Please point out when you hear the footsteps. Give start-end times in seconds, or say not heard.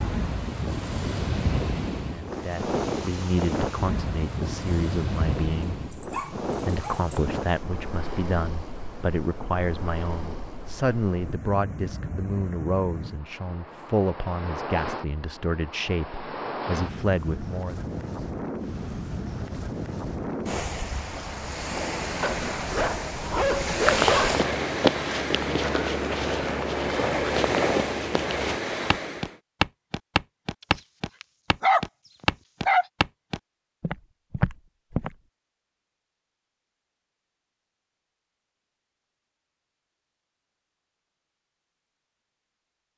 23.8-35.1.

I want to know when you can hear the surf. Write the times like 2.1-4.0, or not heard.
0.0-29.4.